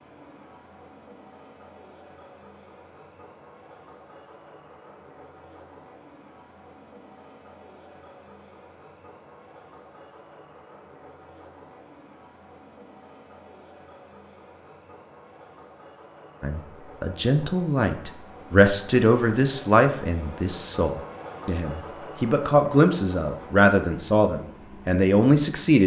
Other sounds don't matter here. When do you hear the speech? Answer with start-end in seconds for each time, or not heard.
16.4-25.8.